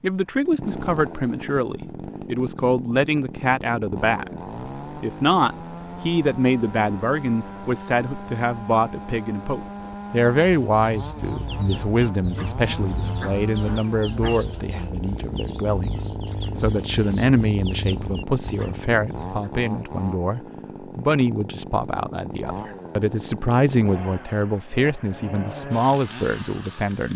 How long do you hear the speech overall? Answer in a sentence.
The speech can be heard for 27 seconds in total.